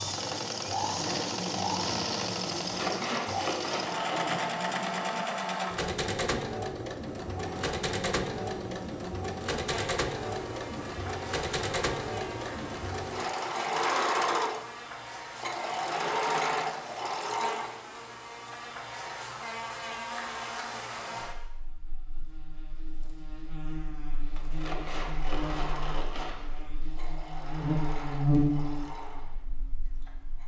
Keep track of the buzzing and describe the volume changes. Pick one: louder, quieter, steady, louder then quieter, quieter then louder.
louder.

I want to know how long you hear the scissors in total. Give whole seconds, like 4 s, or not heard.
4 s.